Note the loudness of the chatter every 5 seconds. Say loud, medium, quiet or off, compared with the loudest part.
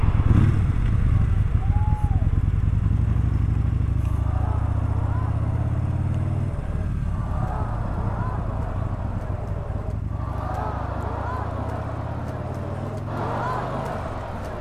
medium, medium, loud.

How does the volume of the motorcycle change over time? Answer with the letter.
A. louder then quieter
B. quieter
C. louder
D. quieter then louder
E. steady
B.